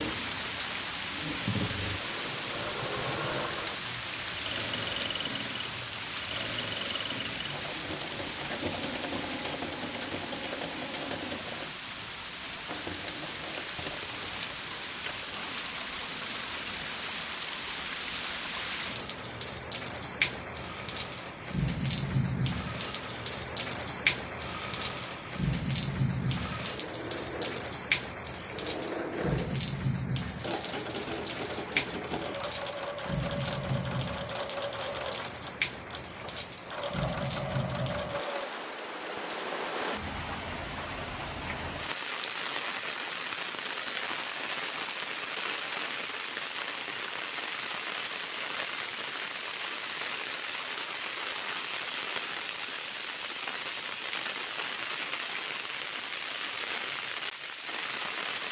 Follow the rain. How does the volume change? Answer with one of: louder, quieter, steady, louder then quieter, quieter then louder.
steady.